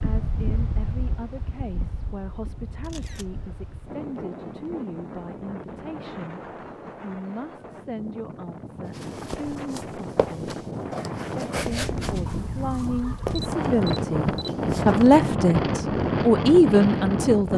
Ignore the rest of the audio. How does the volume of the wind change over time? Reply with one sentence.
The volume of the wind goes up.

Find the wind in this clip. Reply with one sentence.
You can hear the wind from 0.0 to 17.5 s.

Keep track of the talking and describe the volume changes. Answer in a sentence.
The volume of the talking goes up.